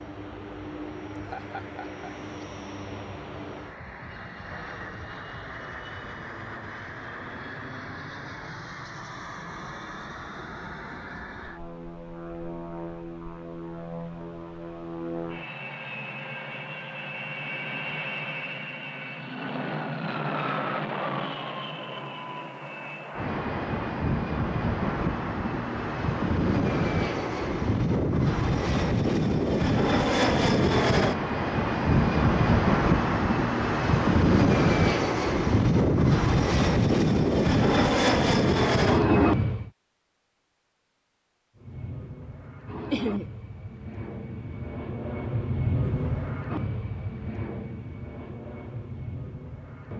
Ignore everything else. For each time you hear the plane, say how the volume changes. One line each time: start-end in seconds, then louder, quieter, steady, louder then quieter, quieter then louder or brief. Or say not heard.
0.0-39.7 louder
41.5-49.9 louder then quieter.